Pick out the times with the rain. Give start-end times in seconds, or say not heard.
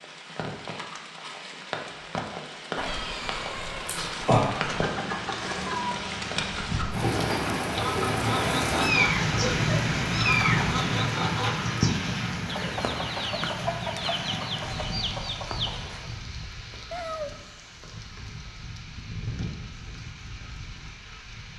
0.0-21.5.